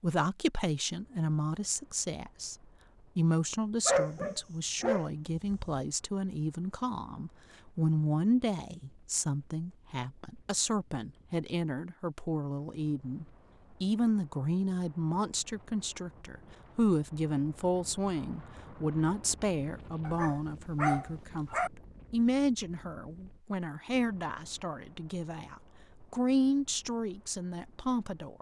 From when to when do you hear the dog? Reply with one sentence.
The dog can be heard from 3.9 to 5.8 s and from 20.0 to 21.7 s.